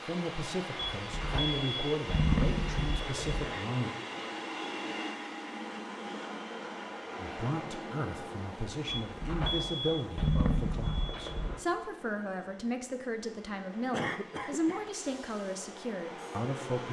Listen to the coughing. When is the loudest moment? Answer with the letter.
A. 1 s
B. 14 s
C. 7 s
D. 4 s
B.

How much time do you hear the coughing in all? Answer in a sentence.
You can hear the coughing for 2 seconds altogether.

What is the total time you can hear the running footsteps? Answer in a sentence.
The running footsteps can't be heard in this clip.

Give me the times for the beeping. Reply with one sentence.
The beeping can be heard from 0.8 to 3.5 s and from 8.8 to 11.6 s.